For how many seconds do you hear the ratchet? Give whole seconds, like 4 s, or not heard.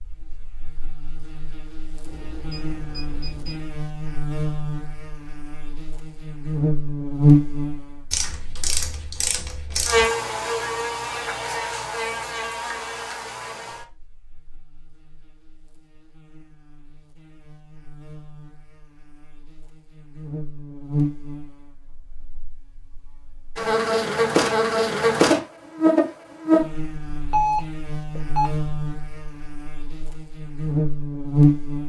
2 s.